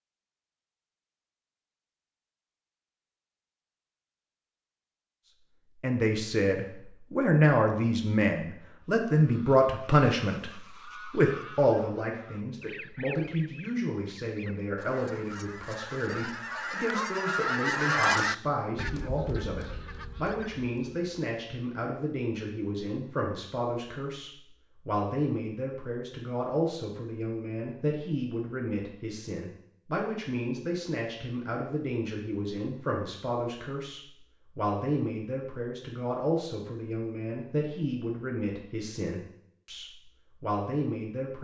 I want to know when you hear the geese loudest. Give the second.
18 s.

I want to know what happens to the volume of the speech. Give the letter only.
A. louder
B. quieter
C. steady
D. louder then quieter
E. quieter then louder
B.